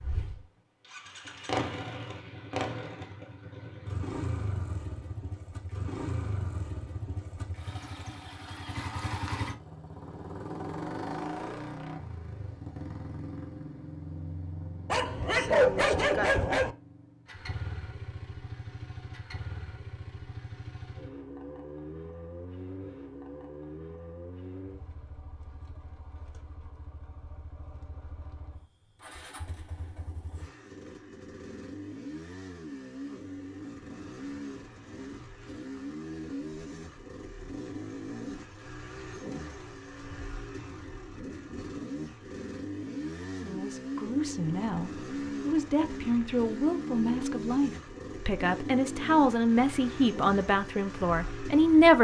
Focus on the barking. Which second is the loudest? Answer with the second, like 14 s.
16 s.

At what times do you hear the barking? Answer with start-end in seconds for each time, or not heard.
14.9-16.8.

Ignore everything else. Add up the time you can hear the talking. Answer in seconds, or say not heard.
9 s.